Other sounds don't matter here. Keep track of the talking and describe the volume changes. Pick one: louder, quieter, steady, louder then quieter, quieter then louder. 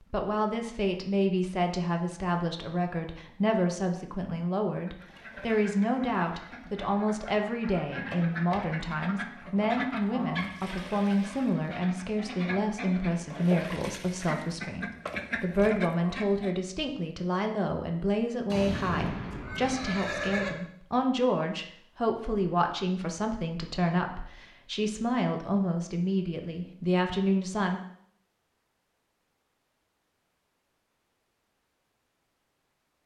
steady.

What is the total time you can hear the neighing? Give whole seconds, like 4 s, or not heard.
2 s.